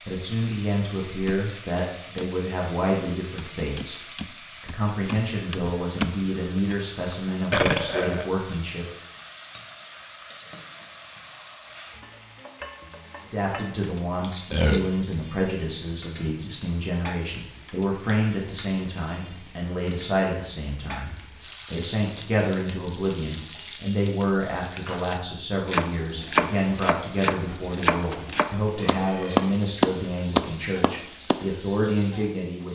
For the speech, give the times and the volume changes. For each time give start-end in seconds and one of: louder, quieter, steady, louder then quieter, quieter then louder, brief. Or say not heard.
0.0-8.8 steady
13.2-32.6 steady.